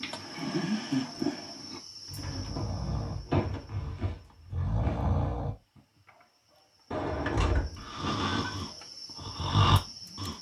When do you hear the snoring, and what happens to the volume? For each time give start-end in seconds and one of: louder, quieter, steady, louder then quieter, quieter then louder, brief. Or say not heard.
0.0-5.5 quieter then louder
7.8-10.3 brief.